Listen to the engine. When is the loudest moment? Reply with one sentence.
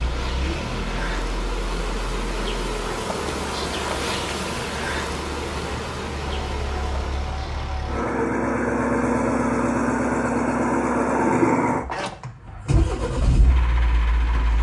The volume of the engine peaks at 11 seconds.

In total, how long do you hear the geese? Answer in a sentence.
You can't hear the geese here.